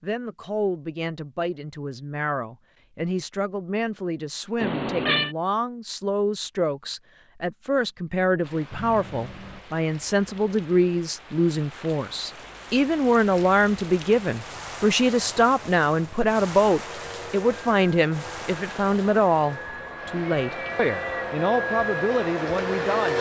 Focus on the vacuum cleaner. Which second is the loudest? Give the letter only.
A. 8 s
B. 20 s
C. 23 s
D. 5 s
C.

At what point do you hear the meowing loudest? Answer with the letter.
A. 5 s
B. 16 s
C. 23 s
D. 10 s
A.